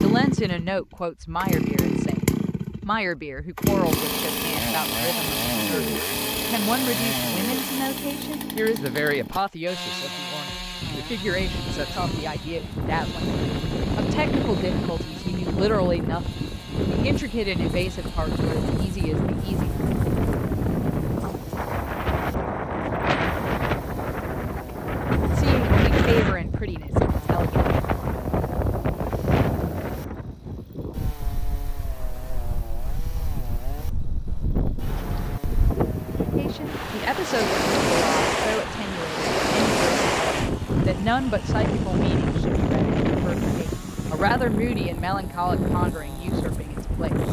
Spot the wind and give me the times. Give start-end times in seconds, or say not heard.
10.8-47.2.